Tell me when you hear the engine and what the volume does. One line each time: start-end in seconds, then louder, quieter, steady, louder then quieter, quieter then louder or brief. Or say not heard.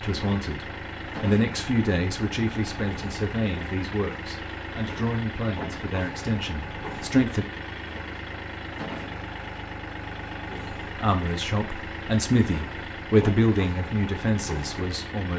0.0-15.3 steady.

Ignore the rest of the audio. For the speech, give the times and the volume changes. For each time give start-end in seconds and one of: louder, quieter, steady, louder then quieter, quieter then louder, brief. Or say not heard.
0.0-7.5 quieter
10.8-15.3 louder then quieter.